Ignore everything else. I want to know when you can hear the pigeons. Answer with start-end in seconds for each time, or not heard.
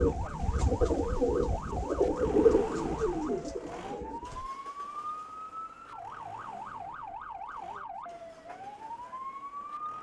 0.0-4.5.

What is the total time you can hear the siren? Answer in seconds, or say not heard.
10 s.